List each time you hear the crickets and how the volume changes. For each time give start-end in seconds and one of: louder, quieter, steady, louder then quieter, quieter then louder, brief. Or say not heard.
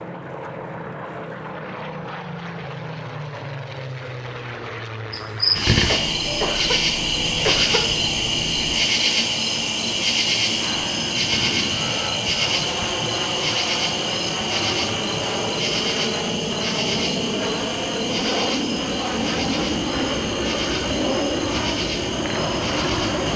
5.1-23.3 quieter.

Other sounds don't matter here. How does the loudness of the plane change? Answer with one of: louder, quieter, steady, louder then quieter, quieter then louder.
louder.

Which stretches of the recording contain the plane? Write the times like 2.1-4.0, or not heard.
0.0-23.3.